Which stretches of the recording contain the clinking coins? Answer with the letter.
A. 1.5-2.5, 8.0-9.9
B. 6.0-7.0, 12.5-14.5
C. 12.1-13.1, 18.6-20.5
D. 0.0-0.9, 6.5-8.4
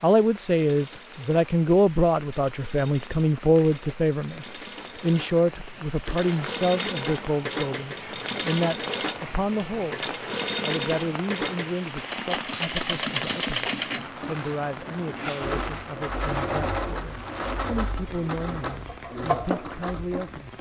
B.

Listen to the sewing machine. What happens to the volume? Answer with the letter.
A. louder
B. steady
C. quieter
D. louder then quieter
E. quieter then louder
A.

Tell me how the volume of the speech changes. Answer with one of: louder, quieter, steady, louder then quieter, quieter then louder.
quieter.